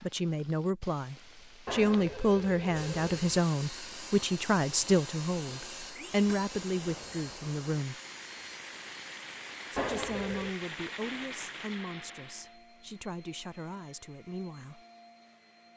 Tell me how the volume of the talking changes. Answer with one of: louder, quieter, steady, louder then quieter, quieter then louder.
quieter.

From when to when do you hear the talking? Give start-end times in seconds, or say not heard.
0.0-8.0, 9.7-14.8.